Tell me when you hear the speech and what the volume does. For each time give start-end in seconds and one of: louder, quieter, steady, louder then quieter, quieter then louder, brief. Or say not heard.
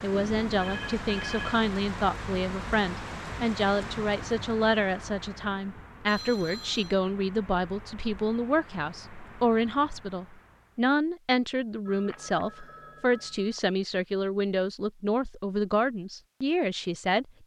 0.0-17.4 steady.